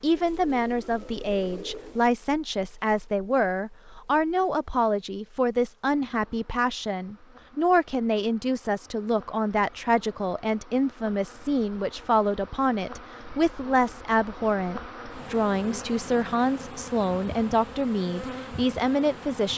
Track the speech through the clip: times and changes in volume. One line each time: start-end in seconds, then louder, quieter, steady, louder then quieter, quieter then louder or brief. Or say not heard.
0.0-19.5 steady.